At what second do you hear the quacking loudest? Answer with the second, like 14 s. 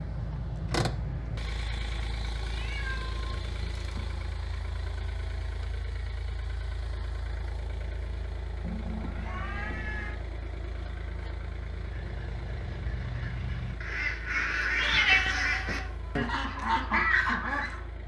17 s.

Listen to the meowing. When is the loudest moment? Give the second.
15 s.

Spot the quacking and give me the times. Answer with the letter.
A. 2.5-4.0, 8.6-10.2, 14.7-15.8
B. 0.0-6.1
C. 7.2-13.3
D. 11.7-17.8
D.